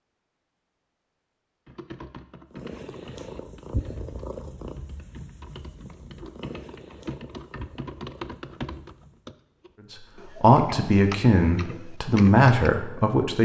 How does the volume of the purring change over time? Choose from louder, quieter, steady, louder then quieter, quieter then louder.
quieter.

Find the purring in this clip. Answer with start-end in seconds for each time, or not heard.
2.5-9.3.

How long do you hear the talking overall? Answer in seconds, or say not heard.
3 s.